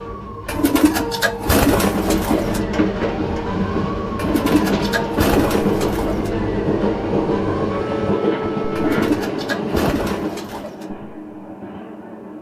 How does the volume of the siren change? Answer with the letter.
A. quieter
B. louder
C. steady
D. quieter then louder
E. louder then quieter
C.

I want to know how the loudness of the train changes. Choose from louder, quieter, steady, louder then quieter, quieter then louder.
quieter.